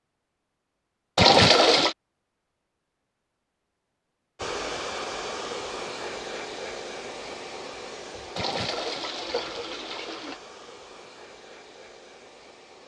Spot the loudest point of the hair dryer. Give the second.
5 s.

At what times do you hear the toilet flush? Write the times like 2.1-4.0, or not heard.
1.1-1.9, 8.3-10.4.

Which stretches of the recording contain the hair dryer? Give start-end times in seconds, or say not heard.
4.3-12.8.